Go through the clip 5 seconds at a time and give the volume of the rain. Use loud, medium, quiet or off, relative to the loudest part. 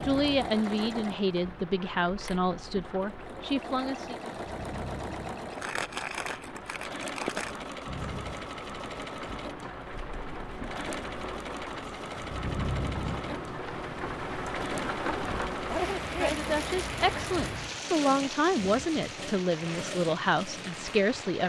medium, medium, loud, loud, medium.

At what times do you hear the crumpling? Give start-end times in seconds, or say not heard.
5.5-7.5, 16.2-17.4.